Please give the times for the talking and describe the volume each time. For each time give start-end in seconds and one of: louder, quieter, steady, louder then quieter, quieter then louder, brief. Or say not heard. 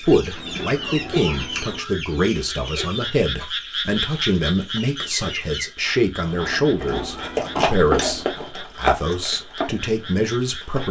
0.0-10.8 steady.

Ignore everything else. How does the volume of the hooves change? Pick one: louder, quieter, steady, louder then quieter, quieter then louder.
louder then quieter.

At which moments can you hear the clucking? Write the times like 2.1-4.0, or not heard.
0.0-5.7.